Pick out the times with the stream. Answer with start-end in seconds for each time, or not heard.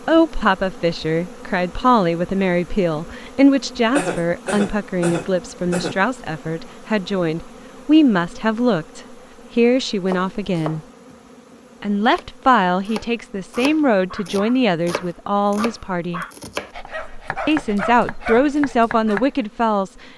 not heard.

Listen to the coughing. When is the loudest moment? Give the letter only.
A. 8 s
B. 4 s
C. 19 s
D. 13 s
B.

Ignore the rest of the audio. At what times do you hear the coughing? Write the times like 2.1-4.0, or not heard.
4.0-6.0.